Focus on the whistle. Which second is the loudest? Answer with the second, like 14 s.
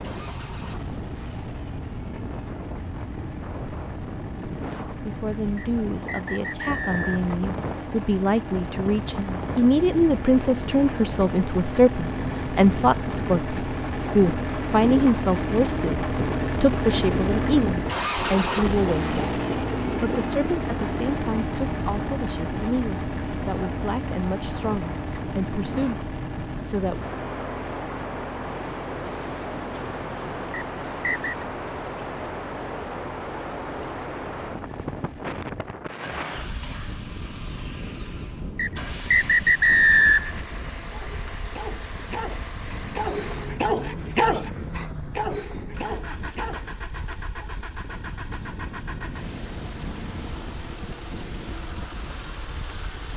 40 s.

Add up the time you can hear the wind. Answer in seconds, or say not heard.
53 s.